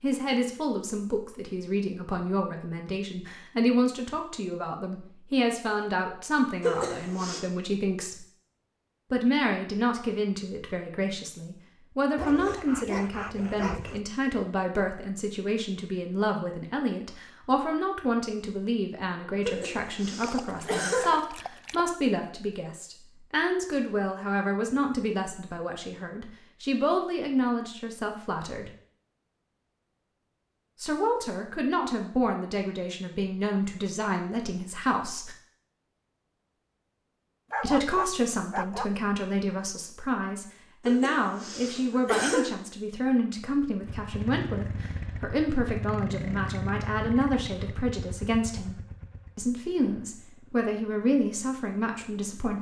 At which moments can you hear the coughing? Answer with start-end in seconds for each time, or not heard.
6.6-7.4, 19.4-21.2, 40.9-42.5.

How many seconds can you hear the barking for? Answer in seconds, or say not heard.
5 s.